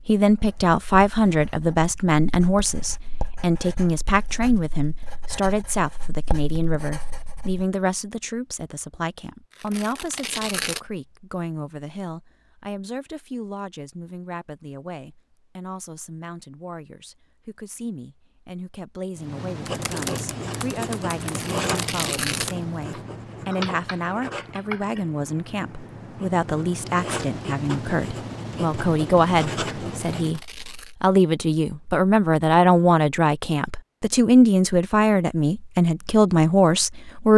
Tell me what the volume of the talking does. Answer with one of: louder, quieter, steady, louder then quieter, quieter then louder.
quieter then louder.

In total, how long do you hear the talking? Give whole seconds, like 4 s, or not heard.
37 s.